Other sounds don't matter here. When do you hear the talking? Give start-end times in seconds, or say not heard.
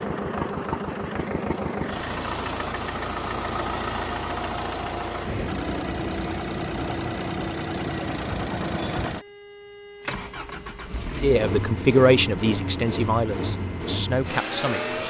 11.2-15.0.